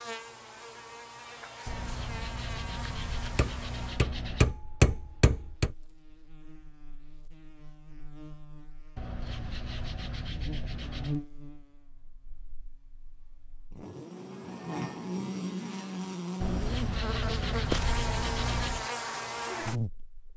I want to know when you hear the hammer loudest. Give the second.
5 s.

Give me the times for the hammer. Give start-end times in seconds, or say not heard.
3.4-5.8.